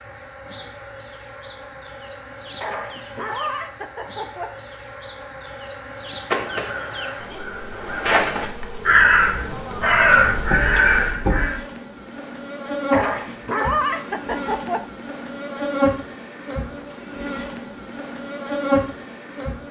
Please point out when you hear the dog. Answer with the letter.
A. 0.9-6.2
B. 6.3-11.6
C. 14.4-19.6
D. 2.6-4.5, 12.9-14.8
D.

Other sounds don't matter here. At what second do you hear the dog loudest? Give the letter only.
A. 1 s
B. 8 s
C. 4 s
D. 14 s
D.